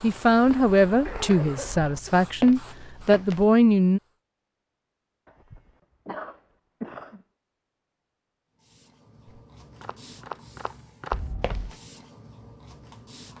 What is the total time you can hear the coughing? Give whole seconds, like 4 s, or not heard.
4 s.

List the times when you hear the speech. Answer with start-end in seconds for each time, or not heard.
0.0-4.0.